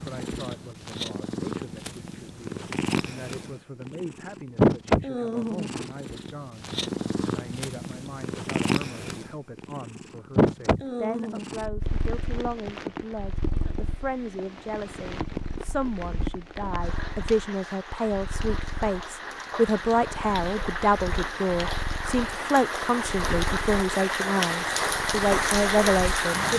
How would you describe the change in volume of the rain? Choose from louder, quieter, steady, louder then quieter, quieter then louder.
louder.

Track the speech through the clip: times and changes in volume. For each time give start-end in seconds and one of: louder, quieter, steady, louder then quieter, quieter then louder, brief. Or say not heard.
0.0-26.5 louder.